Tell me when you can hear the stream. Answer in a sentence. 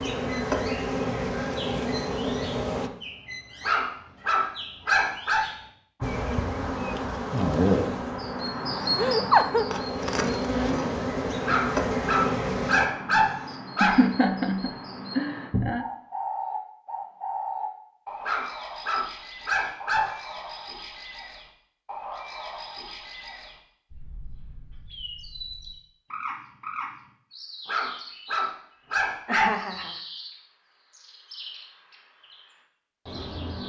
The stream can't be heard in this clip.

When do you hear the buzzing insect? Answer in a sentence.
You can hear the buzzing insect from 0.0 to 2.9 s and from 6.0 to 12.9 s.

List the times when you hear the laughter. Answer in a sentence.
You can hear the laughter from 8.9 to 9.7 s, from 13.8 to 15.8 s and from 29.2 to 30.0 s.